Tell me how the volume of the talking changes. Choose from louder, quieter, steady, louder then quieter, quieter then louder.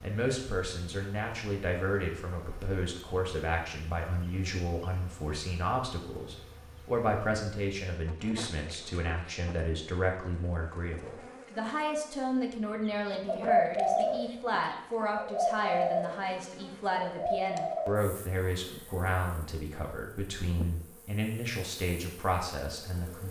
steady.